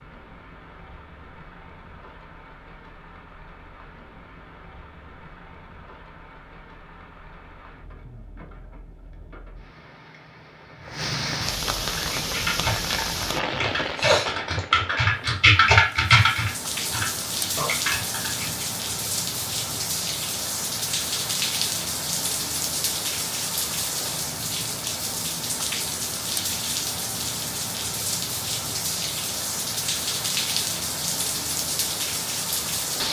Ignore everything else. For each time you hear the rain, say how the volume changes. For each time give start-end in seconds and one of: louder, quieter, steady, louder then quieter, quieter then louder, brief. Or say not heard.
0.0-33.0 louder.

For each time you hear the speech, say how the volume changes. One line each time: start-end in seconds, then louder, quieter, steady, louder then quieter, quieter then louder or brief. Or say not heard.
not heard.